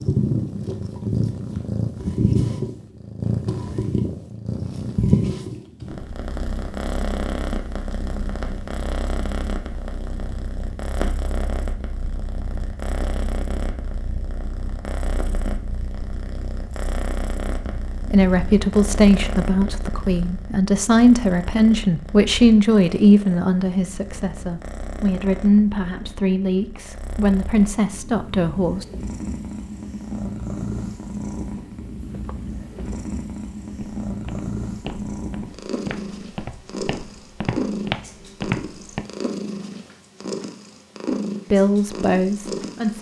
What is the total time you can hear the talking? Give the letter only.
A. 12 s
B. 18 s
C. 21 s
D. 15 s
A.